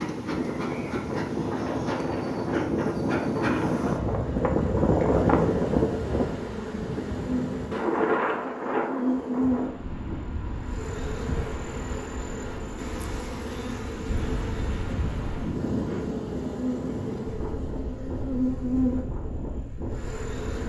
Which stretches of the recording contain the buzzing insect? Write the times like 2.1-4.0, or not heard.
0.0-20.6.